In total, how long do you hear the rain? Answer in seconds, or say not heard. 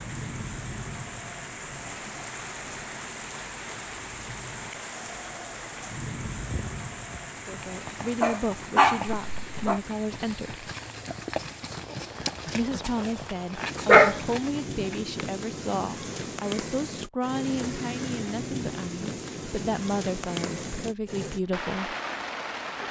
23 s.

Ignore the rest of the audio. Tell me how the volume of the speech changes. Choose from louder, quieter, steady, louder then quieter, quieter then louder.
steady.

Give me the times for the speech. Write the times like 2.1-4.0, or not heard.
7.5-10.7, 12.4-21.9.